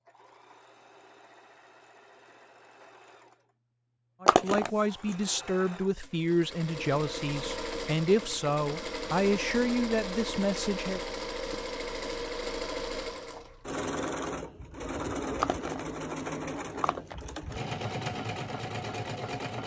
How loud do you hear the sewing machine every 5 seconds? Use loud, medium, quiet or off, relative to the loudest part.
quiet, loud, loud, loud.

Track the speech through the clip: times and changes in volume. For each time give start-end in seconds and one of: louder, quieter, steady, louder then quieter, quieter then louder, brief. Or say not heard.
4.2-11.0 steady.